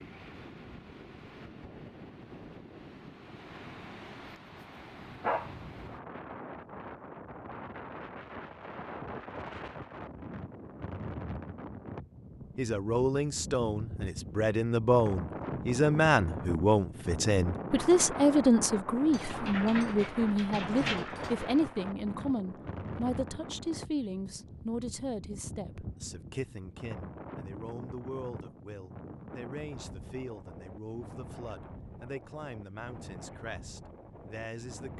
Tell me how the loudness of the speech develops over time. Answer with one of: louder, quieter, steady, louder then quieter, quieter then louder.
quieter.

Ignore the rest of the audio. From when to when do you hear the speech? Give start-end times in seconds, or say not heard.
12.6-34.9.